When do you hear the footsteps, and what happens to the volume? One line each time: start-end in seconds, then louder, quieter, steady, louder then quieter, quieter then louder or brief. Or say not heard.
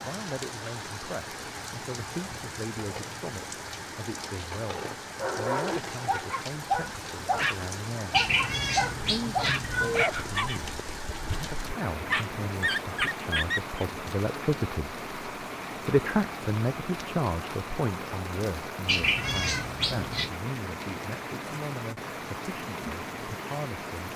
not heard.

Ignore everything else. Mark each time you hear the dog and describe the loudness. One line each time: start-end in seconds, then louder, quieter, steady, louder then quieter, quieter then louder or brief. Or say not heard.
5.2-13.8 quieter then louder.